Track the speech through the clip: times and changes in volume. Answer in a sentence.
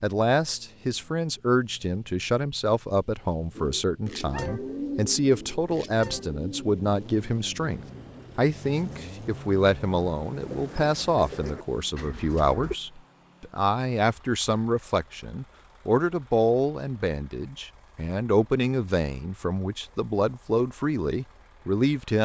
The speech can be heard from 0.0 to 22.1 s, at a steady volume.